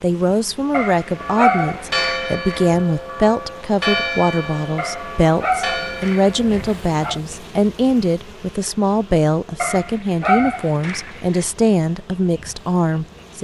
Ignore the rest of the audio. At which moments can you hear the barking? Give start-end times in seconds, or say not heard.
0.7-2.6, 4.8-7.2, 9.6-11.4.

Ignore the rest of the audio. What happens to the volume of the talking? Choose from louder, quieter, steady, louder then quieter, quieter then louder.
steady.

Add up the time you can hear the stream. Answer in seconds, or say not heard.
not heard.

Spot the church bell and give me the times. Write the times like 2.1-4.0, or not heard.
1.1-6.7.